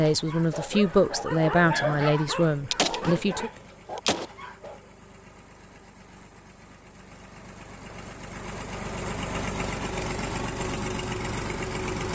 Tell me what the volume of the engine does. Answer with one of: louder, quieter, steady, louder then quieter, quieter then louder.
louder.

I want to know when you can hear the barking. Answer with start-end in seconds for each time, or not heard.
0.0-4.9.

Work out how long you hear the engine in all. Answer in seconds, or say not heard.
12 s.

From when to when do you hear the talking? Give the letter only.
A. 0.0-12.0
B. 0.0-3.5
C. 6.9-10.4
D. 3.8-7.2
B.